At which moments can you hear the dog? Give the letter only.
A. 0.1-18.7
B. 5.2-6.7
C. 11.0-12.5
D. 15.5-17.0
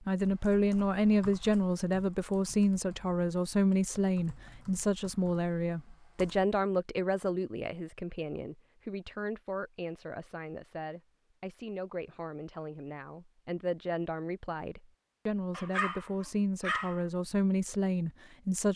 D.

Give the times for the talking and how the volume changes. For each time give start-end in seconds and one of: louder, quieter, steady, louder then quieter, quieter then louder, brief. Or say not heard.
0.1-18.7 quieter then louder.